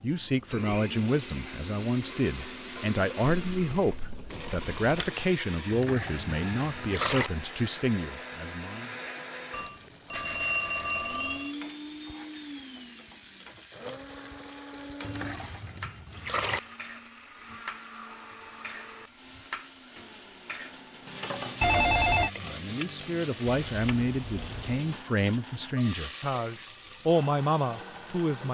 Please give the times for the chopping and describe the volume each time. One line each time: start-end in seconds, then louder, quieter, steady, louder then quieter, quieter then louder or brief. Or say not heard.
not heard.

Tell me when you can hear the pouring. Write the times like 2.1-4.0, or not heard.
5.7-7.3, 15.0-16.6, 23.4-24.9.